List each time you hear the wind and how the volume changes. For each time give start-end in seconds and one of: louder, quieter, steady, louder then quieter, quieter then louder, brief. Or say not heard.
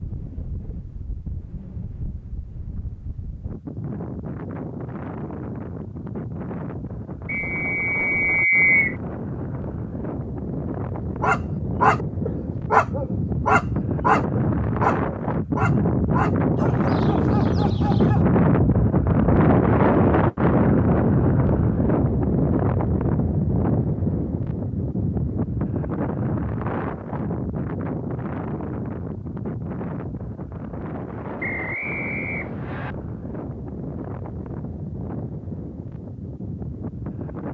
0.0-37.4 louder then quieter.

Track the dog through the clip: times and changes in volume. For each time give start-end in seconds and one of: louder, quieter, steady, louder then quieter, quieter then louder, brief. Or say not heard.
11.2-18.2 quieter.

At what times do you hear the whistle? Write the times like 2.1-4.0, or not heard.
7.2-8.9, 31.4-33.0.